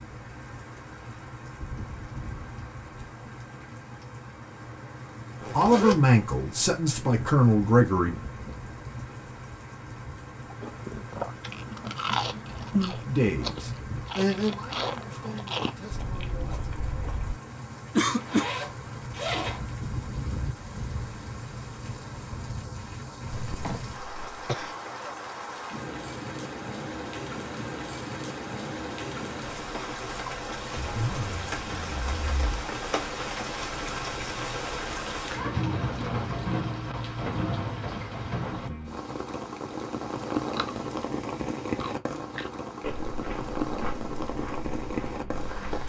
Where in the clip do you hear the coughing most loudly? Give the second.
18 s.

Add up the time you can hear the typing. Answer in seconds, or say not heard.
not heard.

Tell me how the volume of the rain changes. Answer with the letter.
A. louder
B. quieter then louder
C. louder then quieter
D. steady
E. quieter
A.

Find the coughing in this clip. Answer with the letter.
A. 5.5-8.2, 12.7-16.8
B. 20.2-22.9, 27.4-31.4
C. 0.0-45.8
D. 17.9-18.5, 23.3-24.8
D.